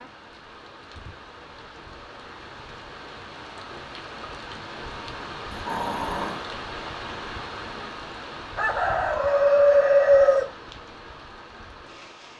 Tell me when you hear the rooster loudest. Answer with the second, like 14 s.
10 s.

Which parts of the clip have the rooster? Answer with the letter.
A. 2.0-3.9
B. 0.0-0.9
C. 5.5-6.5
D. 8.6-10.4
D.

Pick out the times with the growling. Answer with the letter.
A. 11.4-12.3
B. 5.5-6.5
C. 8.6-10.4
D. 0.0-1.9
B.